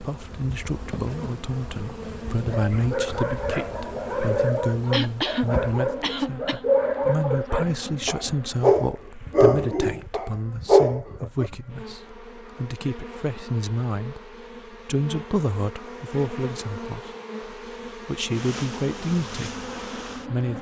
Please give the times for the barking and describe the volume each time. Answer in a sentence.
The barking can be heard from 2.5 to 11.5 s, getting louder.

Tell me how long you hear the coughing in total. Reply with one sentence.
The coughing can be heard for 2 seconds in total.